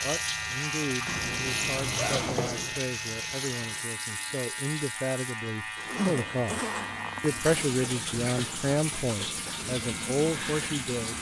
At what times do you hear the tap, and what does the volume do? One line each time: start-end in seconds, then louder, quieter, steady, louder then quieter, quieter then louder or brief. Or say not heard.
0.0-11.1 quieter then louder.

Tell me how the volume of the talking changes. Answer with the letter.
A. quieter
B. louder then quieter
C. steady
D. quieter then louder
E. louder
E.